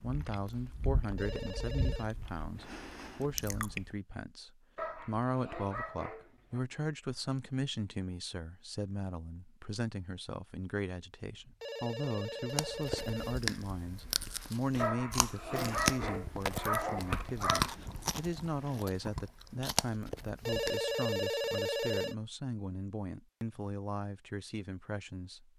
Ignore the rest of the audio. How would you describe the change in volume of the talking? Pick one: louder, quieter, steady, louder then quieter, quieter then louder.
steady.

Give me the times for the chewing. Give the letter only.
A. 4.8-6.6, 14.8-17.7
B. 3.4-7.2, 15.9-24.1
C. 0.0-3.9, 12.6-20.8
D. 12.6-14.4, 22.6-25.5
C.